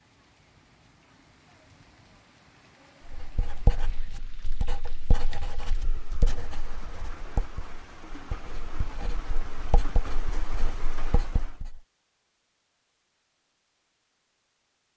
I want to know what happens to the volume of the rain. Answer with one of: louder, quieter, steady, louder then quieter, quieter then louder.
louder.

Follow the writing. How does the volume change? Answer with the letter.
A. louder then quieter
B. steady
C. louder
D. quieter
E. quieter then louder
D.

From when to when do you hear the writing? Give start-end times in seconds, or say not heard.
3.0-11.8.